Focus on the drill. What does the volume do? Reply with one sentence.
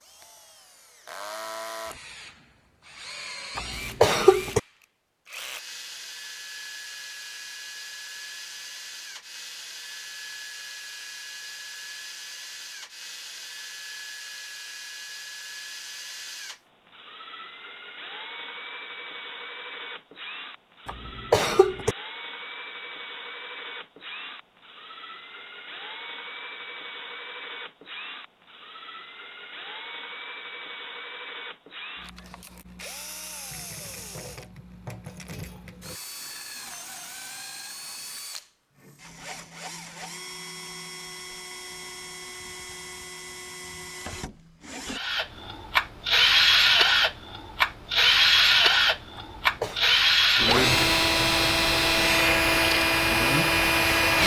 The loudness of the drill goes up.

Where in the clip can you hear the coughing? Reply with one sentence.
The coughing can be heard from 3.5 to 4.6 s, from 20.9 to 21.9 s and from 49.1 to 49.8 s.